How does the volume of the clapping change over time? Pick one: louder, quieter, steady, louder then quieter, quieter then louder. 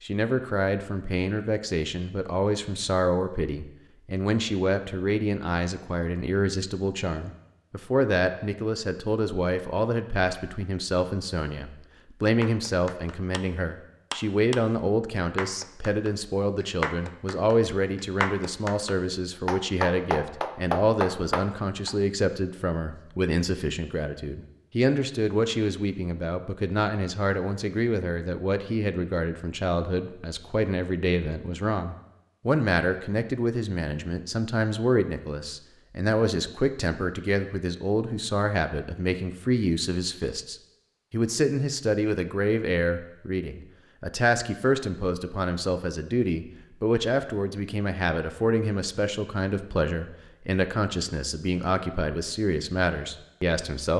louder.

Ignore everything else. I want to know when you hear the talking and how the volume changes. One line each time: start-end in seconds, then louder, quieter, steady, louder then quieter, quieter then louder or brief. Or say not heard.
0.0-53.9 steady.